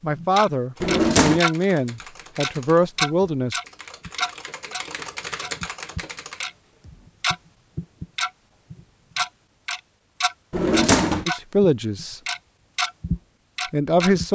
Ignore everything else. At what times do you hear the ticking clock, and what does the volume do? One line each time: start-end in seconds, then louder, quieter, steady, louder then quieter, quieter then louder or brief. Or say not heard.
0.0-1.6 brief
2.4-14.2 quieter then louder.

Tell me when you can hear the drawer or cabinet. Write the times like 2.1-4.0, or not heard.
0.8-1.4, 10.5-11.2.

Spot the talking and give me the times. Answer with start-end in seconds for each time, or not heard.
0.0-3.6, 11.2-12.2, 13.7-14.3.